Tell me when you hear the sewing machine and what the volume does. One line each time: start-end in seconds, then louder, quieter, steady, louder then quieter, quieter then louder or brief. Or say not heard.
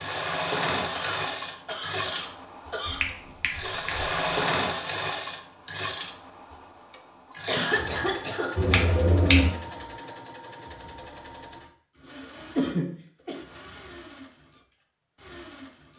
0.0-15.9 quieter.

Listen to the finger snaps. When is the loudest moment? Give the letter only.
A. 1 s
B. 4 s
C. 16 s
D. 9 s
D.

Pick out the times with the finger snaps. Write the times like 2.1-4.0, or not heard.
2.9-4.1, 8.6-9.6.